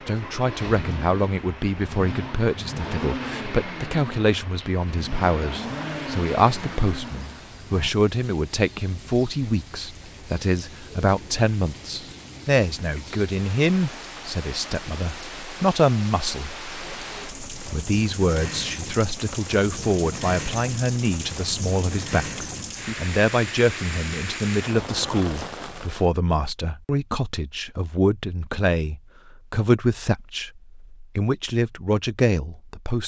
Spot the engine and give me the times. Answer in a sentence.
The engine can be heard from 0.0 to 7.9 s.